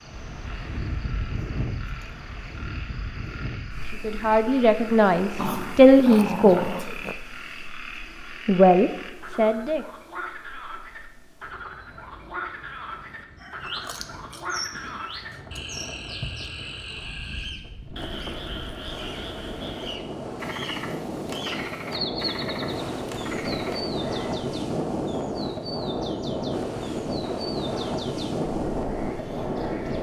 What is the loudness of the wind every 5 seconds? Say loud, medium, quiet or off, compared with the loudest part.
medium, quiet, quiet, quiet, loud, loud.